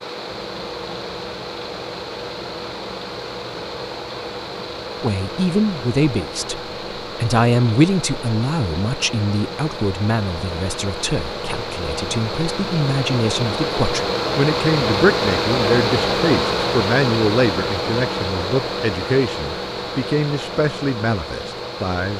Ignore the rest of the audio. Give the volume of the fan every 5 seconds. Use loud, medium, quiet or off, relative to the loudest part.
medium, medium, loud, loud, medium.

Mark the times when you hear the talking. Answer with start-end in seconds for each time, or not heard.
5.0-22.1.